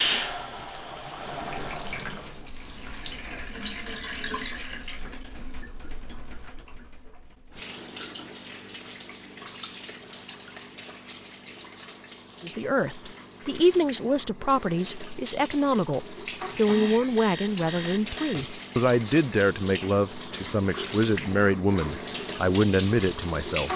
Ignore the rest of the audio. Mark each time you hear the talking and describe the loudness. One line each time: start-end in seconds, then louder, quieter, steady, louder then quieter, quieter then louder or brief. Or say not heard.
12.4-23.7 steady.